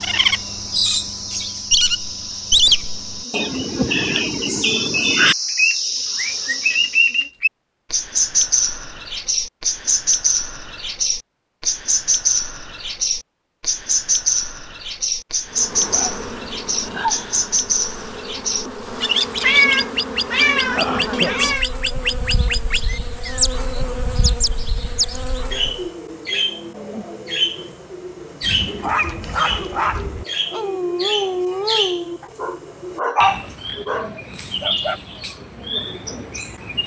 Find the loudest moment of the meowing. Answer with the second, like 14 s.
20 s.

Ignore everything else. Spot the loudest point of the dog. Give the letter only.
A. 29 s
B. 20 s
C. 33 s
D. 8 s
C.